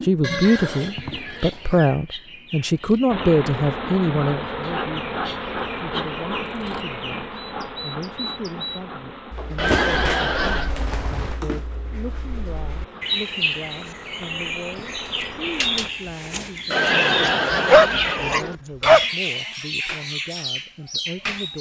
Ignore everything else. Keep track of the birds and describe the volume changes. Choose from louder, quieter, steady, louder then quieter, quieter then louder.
louder.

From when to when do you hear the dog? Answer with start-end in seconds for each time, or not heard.
17.2-19.1.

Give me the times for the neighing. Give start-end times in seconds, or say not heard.
0.2-1.9, 9.6-10.8, 16.7-18.6.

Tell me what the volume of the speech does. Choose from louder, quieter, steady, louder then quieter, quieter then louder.
quieter.